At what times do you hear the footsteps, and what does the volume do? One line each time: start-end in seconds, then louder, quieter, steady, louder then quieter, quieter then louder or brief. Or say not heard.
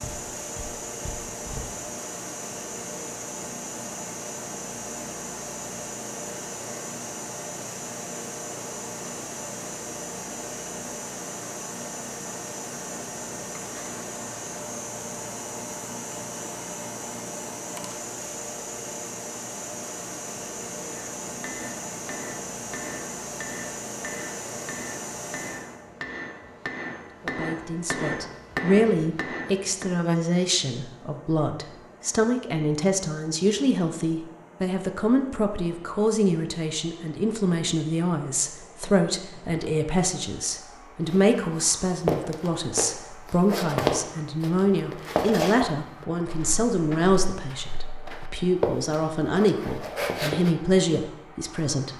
0.0-1.7 brief
41.0-50.5 quieter then louder.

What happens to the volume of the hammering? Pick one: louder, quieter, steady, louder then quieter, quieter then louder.
louder.